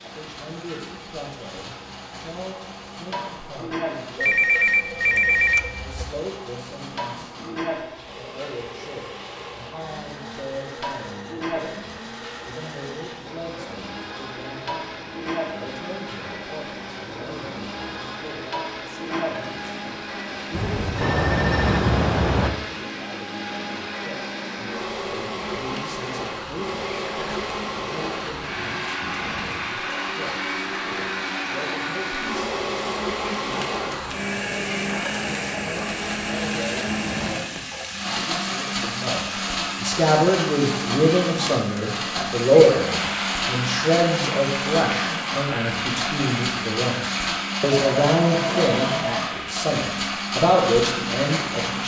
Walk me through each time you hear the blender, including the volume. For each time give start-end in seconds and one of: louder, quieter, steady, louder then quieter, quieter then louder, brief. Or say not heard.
0.0-51.8 louder.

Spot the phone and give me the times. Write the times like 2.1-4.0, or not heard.
4.2-6.0, 20.5-22.5, 47.7-49.2.